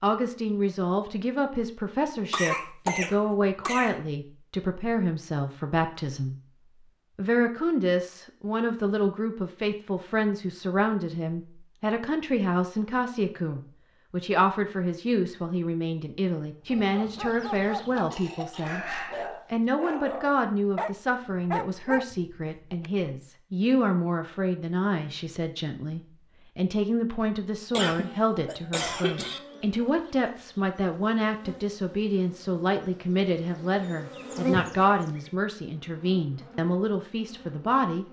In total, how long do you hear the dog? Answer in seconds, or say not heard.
6 s.